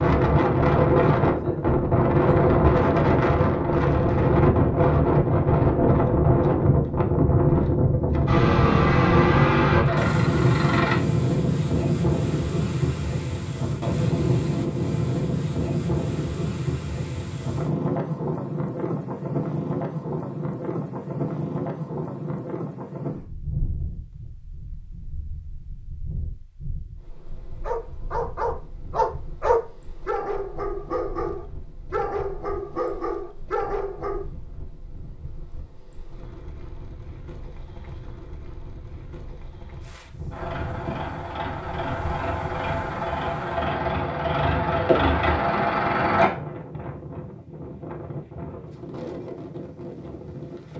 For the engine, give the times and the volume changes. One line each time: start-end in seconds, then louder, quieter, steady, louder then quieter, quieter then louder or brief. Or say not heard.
8.2-10.9 brief
40.3-46.3 louder.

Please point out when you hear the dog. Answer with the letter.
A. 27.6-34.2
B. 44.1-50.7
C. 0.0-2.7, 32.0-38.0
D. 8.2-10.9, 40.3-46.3
A.